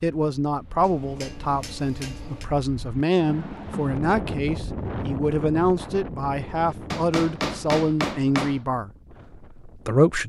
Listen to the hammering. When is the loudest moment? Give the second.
8 s.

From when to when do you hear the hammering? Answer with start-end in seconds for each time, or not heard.
0.8-2.5, 6.9-8.6.